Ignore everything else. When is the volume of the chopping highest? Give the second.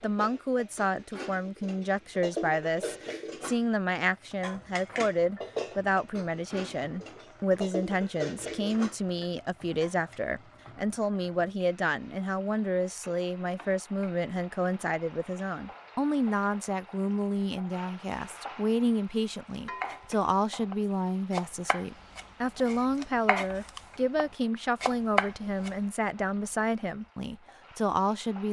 25 s.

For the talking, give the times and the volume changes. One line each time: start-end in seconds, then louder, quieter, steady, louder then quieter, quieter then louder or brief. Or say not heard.
0.0-28.4 steady.